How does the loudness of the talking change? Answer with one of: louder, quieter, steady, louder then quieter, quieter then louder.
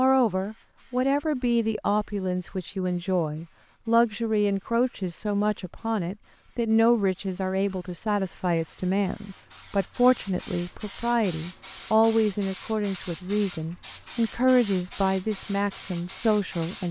steady.